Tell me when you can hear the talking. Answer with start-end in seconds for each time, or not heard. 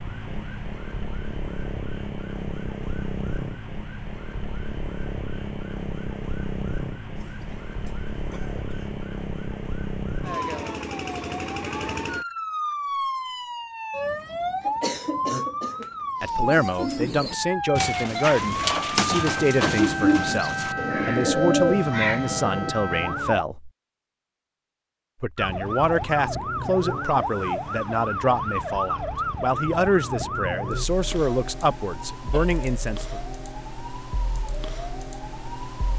16.2-23.7, 25.2-33.2.